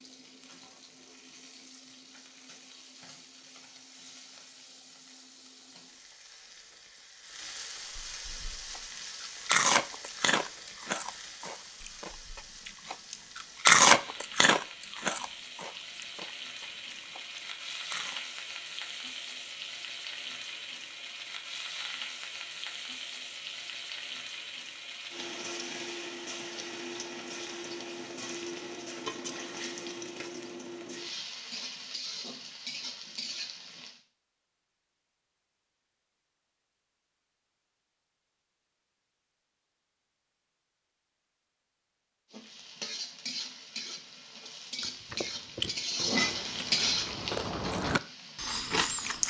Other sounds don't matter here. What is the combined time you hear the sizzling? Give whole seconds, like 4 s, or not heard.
41 s.